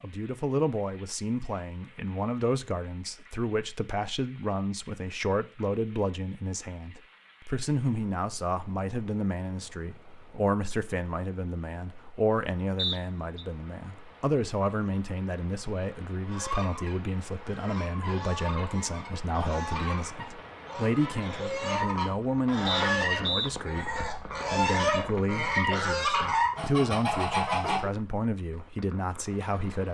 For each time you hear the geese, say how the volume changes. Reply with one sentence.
The geese can be heard from 16.2 to 27.9 s, getting louder.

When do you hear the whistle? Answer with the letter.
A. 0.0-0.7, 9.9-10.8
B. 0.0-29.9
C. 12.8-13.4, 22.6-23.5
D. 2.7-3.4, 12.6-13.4
C.